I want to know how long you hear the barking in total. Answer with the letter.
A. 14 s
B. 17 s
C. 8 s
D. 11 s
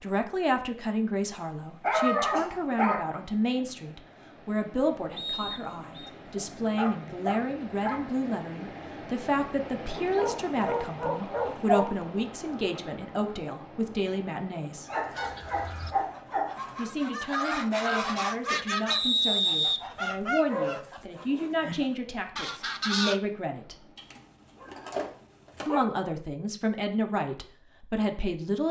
D.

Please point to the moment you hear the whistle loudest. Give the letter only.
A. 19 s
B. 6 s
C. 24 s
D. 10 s
A.